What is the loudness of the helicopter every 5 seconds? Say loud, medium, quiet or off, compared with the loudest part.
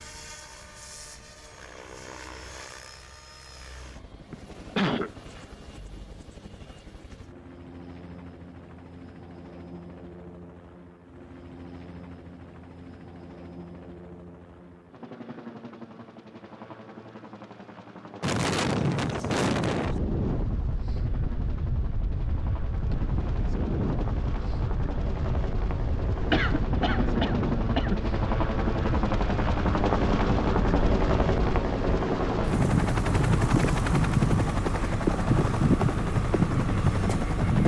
quiet, quiet, quiet, quiet, quiet, loud, loud, loud.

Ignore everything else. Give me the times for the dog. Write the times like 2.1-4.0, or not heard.
not heard.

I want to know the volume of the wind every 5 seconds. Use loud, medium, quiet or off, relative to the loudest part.
off, off, off, loud, medium, medium, loud, loud.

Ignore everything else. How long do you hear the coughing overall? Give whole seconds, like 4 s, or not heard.
3 s.